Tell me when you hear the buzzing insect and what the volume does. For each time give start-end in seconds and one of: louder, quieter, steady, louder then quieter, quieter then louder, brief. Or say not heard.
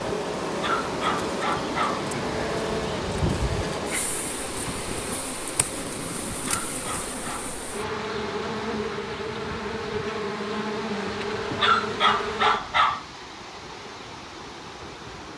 0.0-12.6 quieter then louder.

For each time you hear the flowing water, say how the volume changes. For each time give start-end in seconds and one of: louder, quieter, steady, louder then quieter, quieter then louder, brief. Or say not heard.
0.0-15.3 quieter.